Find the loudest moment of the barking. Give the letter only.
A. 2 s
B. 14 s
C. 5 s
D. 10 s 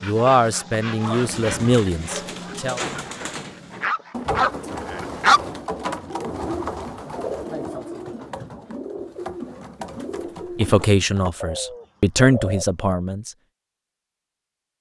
C.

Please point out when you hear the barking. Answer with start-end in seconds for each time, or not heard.
0.0-5.4.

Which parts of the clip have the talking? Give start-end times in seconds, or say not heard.
0.0-2.8, 10.6-13.3.